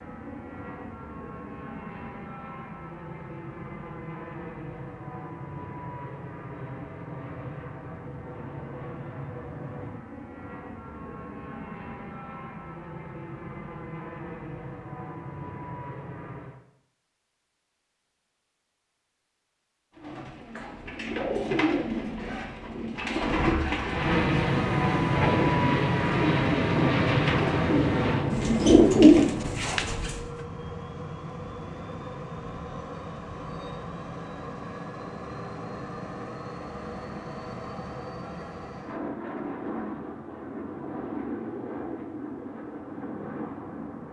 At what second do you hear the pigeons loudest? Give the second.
29 s.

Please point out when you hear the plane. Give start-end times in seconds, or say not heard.
0.0-16.6, 23.9-44.0.